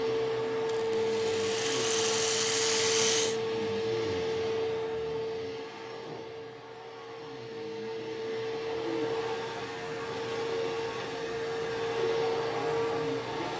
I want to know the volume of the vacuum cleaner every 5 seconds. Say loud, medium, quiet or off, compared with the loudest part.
loud, medium, loud.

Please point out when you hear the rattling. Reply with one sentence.
The rattling can be heard from 0.8 to 3.4 s.